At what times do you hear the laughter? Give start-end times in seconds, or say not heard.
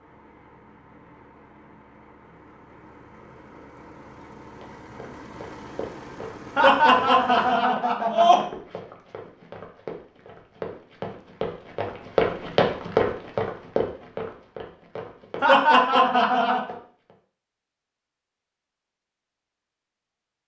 6.5-8.4, 15.4-16.8.